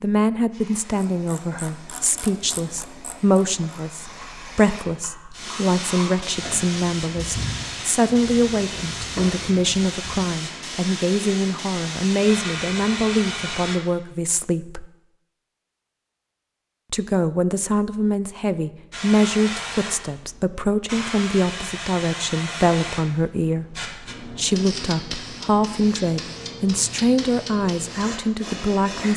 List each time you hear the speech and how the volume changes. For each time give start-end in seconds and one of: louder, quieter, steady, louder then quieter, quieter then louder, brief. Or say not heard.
0.0-14.8 steady
16.9-29.1 steady.